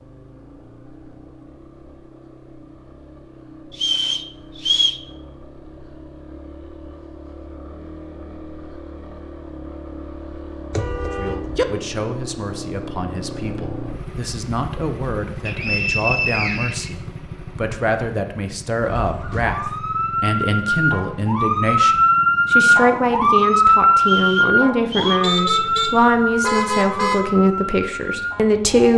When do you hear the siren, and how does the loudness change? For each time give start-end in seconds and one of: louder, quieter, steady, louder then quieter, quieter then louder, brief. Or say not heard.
18.8-28.9 louder then quieter.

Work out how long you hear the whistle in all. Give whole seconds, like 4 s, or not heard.
4 s.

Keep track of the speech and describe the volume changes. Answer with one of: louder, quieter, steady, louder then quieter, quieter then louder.
louder.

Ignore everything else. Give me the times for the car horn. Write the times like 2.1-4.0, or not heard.
10.7-11.7, 25.2-27.4.